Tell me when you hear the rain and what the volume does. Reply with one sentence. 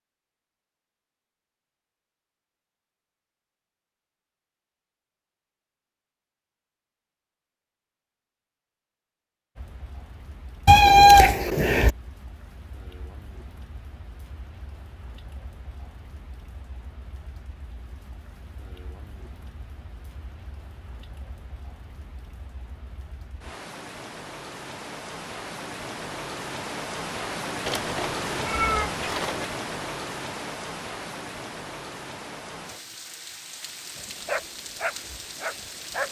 You can hear the rain from 9.6 to 36.0 s, getting louder then quieter.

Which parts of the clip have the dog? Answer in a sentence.
The dog can be heard from 34.0 to 36.0 s.